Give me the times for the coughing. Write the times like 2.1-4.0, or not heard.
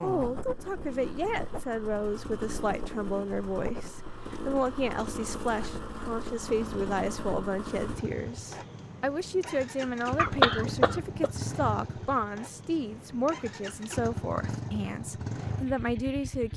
10.2-11.3.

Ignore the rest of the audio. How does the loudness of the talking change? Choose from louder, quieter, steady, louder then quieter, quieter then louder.
steady.